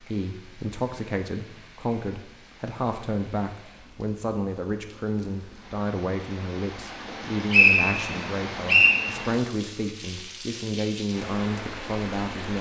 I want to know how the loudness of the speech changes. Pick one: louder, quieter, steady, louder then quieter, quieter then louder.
steady.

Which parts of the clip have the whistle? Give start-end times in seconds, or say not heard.
7.1-9.0.